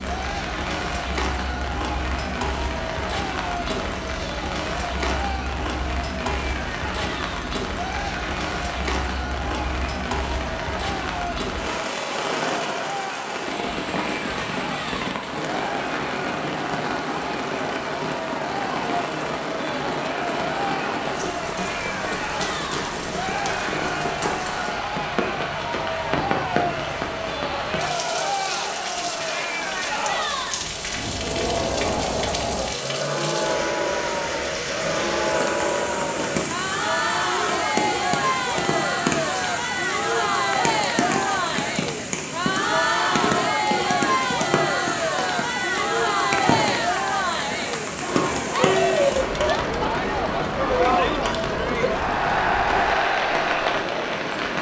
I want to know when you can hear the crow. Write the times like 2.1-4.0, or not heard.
not heard.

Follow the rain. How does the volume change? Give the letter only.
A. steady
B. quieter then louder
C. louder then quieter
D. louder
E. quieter
A.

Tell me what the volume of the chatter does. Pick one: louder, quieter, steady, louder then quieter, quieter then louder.
louder.